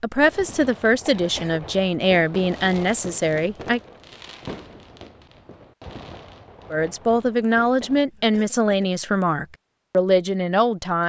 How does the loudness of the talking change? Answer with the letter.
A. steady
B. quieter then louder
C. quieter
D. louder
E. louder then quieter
A.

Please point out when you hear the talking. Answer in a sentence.
The talking can be heard from 0.0 to 3.8 s and from 6.7 to 11.0 s.